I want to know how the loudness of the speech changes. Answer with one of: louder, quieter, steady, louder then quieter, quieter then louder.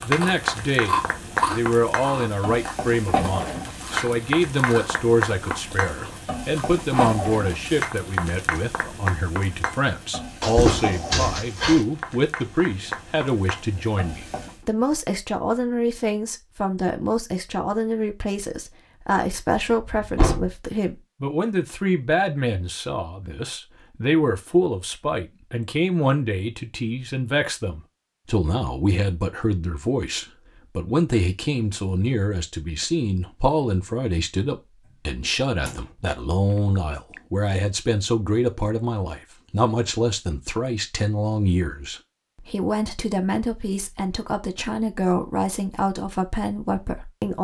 steady.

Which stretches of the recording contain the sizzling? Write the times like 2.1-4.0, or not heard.
0.0-14.6.